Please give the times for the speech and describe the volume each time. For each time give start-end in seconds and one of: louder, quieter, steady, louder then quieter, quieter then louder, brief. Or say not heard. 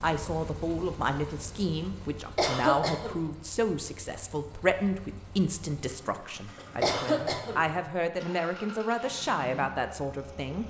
0.0-10.6 steady.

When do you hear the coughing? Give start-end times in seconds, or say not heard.
2.4-3.1, 6.8-7.6.